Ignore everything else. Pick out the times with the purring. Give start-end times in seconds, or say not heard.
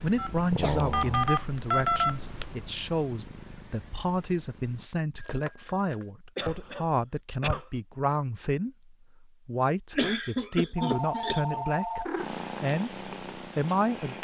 0.0-4.9, 12.1-14.2.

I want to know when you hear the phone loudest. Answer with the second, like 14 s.
2 s.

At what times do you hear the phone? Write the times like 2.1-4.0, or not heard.
0.1-2.5, 5.2-6.0, 10.8-12.2.